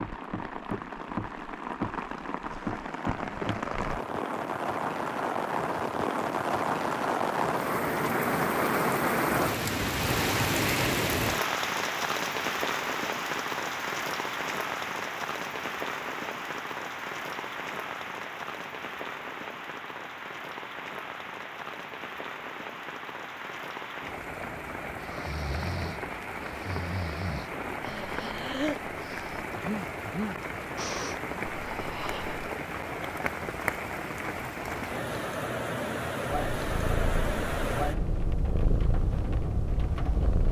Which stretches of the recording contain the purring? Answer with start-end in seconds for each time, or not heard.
36.5-40.4.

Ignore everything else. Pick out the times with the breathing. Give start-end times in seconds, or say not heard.
25.0-32.5.